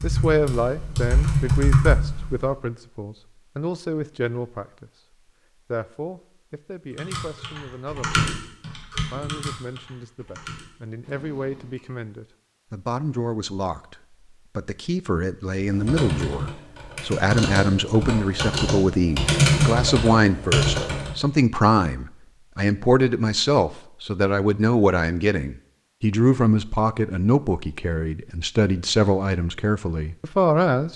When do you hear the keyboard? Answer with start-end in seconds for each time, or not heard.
0.0-2.5, 6.9-11.8, 15.6-21.1.